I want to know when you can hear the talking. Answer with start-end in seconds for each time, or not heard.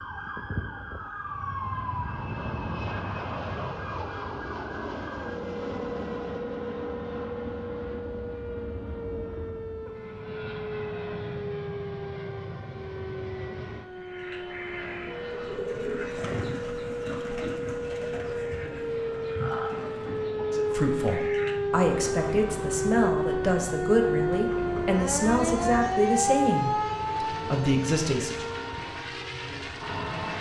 20.5-28.4.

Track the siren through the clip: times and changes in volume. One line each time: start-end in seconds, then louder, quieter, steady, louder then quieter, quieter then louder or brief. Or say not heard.
0.0-30.3 louder.